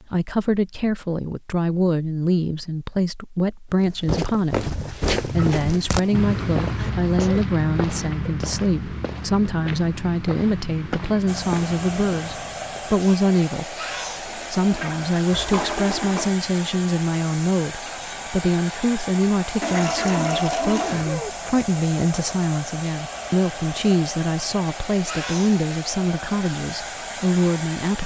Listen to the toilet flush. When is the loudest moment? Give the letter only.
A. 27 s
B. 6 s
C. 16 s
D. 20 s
D.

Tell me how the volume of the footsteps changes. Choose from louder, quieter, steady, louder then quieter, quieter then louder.
quieter.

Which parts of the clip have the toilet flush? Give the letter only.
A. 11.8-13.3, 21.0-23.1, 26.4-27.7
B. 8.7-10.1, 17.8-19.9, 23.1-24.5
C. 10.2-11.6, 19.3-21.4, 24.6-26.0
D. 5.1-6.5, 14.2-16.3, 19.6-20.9
D.